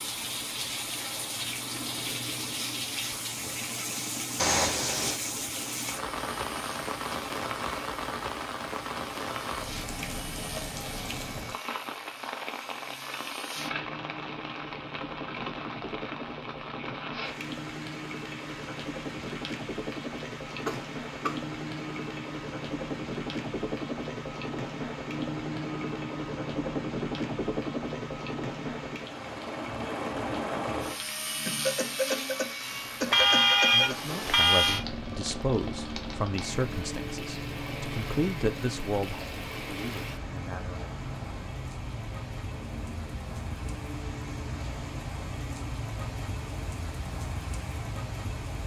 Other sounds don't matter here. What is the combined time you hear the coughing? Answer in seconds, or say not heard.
3 s.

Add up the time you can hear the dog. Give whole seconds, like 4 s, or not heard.
not heard.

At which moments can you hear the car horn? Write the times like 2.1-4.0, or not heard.
4.3-5.2, 33.1-34.9.